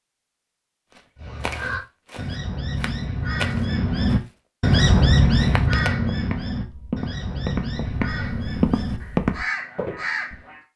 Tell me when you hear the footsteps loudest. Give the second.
9 s.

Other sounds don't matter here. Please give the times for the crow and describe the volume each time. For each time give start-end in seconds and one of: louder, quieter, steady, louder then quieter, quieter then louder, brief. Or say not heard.
1.1-10.6 louder then quieter.